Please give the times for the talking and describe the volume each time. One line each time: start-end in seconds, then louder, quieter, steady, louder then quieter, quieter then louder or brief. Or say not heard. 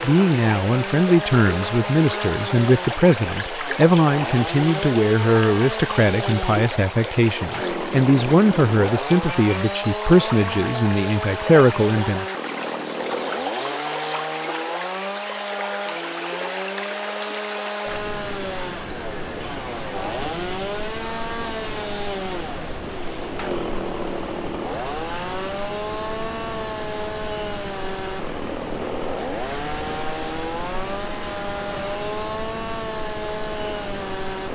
0.0-12.2 steady.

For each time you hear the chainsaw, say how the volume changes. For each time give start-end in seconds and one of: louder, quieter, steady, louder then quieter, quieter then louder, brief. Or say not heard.
0.0-34.5 steady.